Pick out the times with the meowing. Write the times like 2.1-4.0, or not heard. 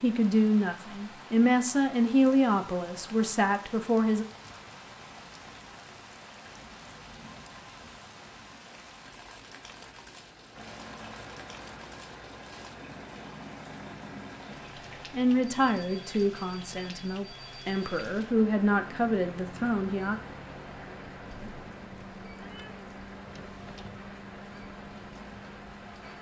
22.4-23.9.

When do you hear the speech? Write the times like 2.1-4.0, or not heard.
0.0-4.2, 15.1-20.1.